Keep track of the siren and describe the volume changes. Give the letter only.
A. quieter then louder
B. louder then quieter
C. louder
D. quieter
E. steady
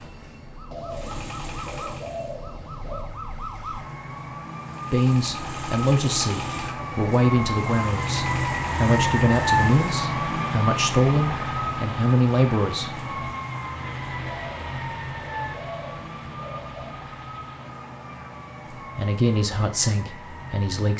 B.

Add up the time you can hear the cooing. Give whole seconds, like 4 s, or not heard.
5 s.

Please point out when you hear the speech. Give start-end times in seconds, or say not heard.
4.9-12.9, 18.9-20.9.